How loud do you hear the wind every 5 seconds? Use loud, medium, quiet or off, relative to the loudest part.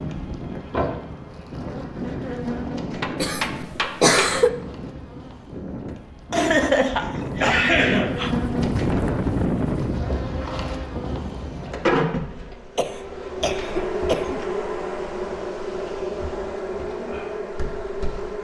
medium, loud, medium, off.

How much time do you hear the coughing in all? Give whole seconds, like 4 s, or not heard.
5 s.